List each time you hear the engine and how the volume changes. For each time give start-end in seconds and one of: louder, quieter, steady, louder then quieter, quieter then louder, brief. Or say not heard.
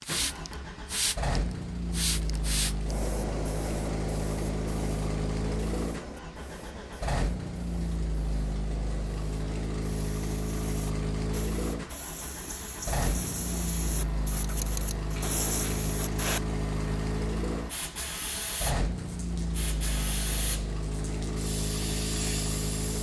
0.0-22.9 steady.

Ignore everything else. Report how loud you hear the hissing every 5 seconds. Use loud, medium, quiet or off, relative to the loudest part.
loud, medium, medium, loud, loud.